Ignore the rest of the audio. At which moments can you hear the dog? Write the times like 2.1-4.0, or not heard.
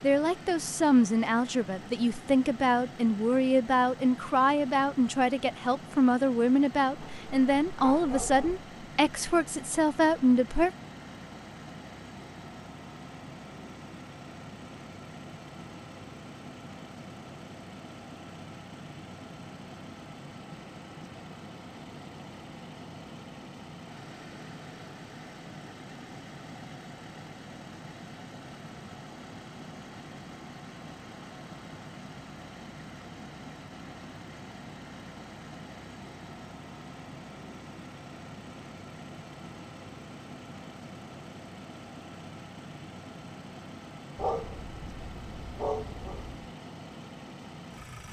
7.0-8.6, 44.1-46.5.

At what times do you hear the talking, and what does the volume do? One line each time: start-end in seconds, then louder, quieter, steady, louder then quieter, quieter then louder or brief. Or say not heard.
0.0-10.7 steady.